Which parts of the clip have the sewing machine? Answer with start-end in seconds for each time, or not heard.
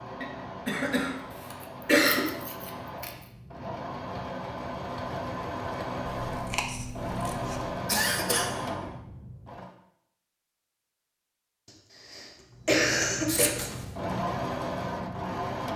0.0-9.8, 12.5-15.7.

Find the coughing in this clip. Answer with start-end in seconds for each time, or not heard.
0.2-2.2, 7.8-8.5, 12.1-13.5.